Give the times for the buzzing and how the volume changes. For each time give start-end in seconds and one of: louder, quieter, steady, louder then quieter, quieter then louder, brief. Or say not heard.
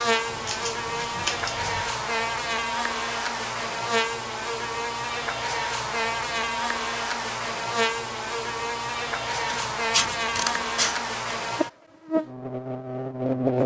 0.0-13.6 steady.